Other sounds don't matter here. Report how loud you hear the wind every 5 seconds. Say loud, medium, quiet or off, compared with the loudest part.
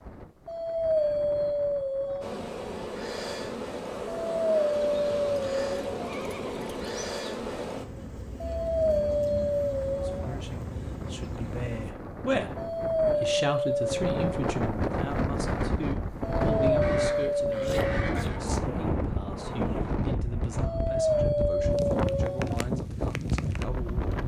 quiet, quiet, medium, loud, loud.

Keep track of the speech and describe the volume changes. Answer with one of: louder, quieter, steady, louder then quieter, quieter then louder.
quieter.